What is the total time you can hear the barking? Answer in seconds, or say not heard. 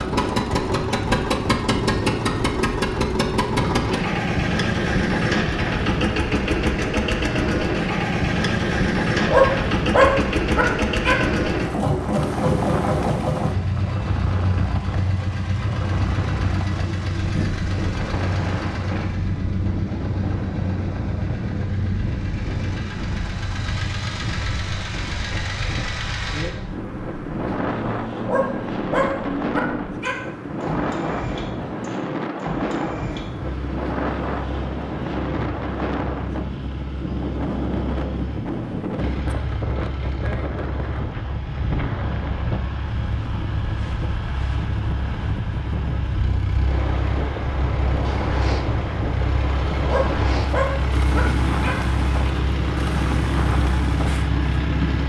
6 s.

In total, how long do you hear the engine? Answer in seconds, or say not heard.
55 s.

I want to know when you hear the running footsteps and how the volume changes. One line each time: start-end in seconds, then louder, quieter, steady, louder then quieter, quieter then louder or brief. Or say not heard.
not heard.